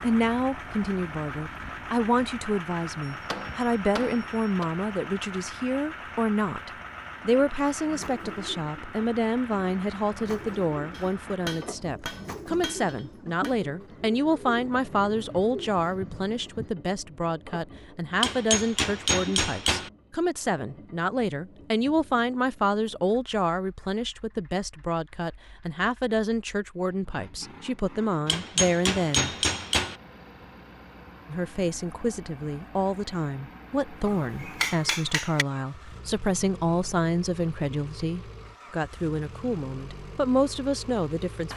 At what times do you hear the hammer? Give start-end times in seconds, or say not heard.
3.1-4.7, 10.9-13.6, 18.2-19.9, 28.2-29.9, 34.0-35.5.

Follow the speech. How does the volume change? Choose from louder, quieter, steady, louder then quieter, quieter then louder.
steady.